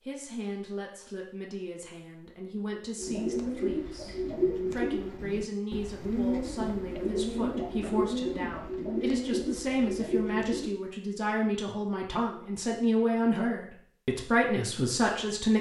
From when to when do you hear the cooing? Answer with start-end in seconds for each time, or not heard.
3.0-10.7.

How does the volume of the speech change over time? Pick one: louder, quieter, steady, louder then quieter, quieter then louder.
louder.